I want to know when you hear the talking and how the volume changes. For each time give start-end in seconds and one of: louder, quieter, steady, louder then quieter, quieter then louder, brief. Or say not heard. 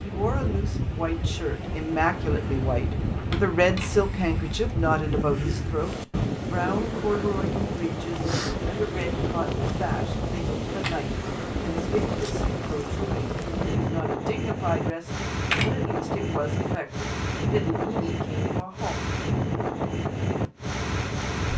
0.0-18.9 quieter.